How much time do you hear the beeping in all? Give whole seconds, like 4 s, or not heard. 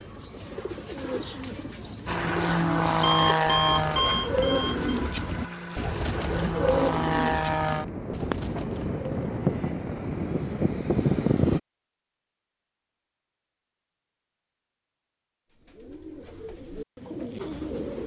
2 s.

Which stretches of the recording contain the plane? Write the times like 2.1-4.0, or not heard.
2.0-11.6.